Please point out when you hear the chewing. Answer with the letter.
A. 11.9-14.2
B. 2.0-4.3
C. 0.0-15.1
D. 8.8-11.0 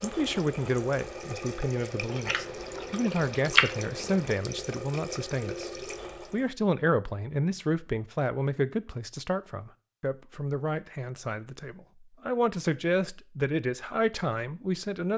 B.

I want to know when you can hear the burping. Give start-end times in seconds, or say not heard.
not heard.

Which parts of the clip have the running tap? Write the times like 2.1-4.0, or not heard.
0.0-6.5.